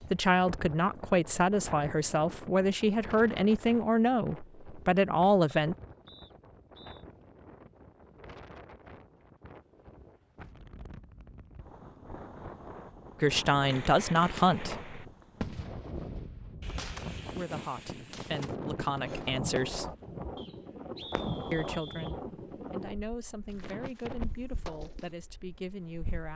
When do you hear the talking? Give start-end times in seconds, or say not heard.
0.1-5.8, 13.2-14.9, 17.3-19.9, 21.5-26.3.